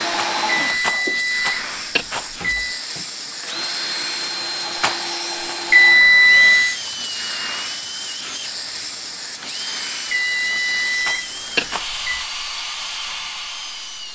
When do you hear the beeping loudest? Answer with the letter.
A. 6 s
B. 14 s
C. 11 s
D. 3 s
A.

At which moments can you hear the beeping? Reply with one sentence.
You can hear the beeping from 0.7 to 2.8 s, from 5.7 to 6.8 s and from 10.1 to 12.2 s.